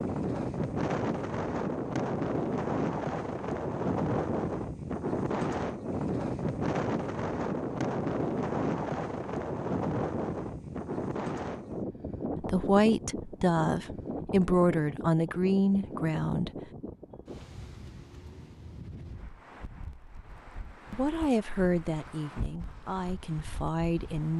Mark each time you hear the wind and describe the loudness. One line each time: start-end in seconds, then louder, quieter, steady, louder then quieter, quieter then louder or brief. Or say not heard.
0.0-24.3 quieter.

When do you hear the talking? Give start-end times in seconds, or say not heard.
12.4-16.5, 20.9-24.3.